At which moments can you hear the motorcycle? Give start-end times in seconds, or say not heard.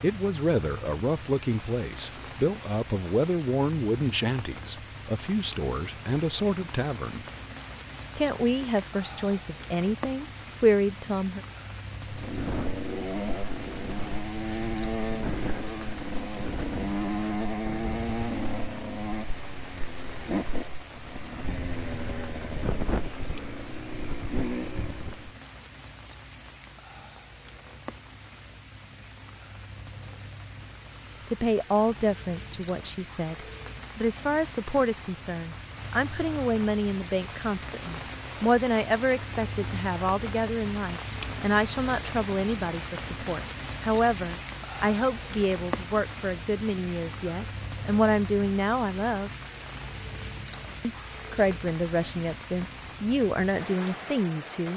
12.1-25.3.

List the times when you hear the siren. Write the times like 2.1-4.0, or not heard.
not heard.